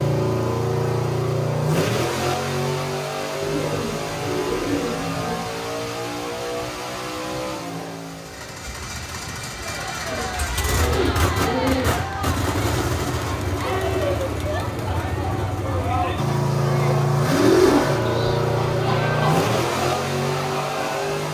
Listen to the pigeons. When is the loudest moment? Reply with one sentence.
The volume of the pigeons peaks at 18 seconds.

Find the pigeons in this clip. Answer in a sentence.
You can hear the pigeons from 3.4 to 5.4 s, from 10.1 to 12.1 s and from 17.3 to 19.4 s.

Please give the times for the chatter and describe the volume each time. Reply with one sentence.
The chatter can be heard from 9.4 to 21.3 s, at a steady volume.